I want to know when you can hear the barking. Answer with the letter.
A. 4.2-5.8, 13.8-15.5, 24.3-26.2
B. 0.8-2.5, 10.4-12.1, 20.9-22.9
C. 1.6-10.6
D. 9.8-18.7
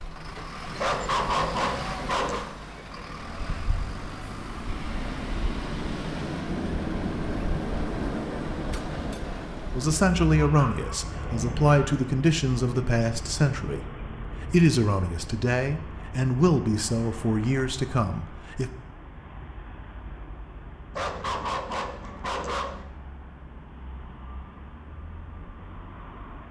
B.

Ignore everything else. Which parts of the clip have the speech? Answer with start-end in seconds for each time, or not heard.
9.8-18.7.